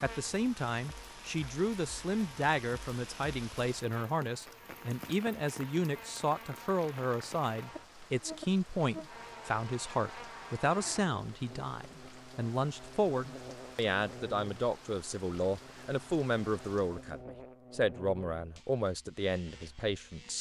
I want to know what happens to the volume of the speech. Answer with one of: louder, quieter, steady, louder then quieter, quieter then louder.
steady.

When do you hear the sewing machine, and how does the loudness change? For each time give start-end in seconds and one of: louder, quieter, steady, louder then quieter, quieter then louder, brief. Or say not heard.
not heard.